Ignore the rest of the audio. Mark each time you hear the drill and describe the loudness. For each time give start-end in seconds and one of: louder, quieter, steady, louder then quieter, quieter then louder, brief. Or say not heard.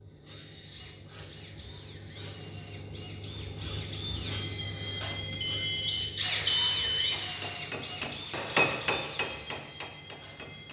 0.0-10.6 louder then quieter.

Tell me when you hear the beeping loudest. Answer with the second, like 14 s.
7 s.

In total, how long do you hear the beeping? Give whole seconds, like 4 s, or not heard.
2 s.